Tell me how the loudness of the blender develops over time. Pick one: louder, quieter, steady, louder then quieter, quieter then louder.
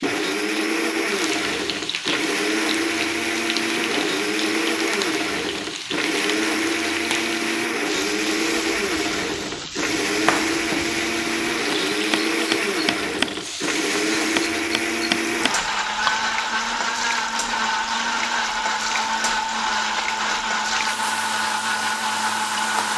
steady.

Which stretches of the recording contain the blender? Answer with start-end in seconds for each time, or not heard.
0.0-22.9.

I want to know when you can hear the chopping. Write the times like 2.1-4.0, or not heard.
9.2-16.1.